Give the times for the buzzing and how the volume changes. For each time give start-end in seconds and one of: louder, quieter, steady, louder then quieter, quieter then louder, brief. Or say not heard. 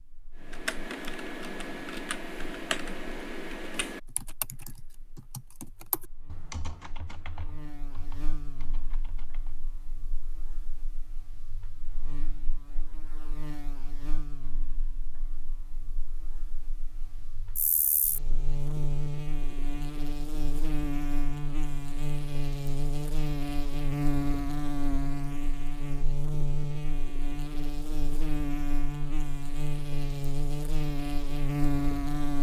0.0-32.3 louder.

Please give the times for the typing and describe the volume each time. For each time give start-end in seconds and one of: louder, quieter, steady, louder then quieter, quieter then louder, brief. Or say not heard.
0.4-9.7 quieter.